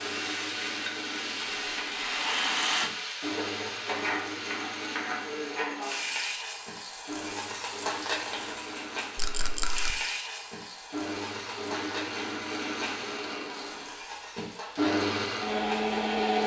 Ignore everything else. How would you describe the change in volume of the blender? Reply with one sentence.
The loudness of the blender goes up.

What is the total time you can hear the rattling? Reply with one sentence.
The rattling can be heard for 2 seconds in total.